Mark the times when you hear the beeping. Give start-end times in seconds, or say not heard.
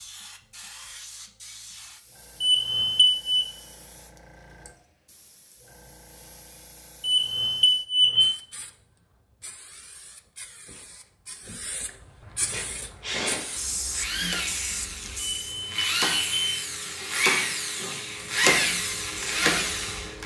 2.4-3.5, 7.0-8.3, 15.3-16.6.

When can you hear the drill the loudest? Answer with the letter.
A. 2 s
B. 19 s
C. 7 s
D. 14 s
B.